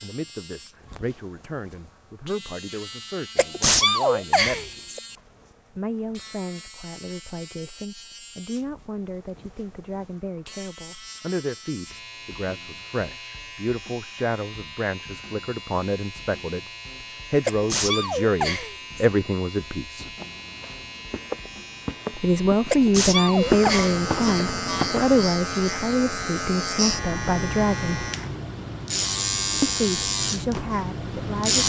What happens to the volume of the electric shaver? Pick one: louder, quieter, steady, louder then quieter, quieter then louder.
louder.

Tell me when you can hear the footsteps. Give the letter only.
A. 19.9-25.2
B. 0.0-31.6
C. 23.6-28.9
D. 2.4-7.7
A.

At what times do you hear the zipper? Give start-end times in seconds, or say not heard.
not heard.